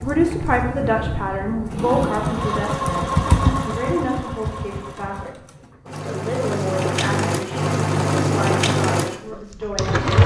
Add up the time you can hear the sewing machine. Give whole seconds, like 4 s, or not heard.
10 s.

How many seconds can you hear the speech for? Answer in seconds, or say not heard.
10 s.